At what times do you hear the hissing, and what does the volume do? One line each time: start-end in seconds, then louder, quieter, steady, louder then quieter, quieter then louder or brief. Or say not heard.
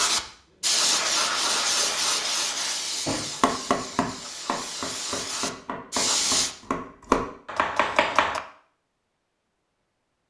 0.0-6.5 quieter then louder.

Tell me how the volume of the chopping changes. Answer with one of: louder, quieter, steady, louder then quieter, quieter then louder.
quieter then louder.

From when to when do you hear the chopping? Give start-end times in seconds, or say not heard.
3.0-8.4.